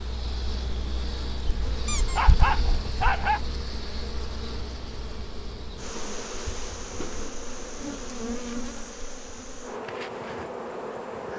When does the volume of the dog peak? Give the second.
3 s.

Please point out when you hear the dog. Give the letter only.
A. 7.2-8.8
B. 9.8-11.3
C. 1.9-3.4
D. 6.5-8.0
C.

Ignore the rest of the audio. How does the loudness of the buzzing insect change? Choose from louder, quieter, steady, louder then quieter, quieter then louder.
steady.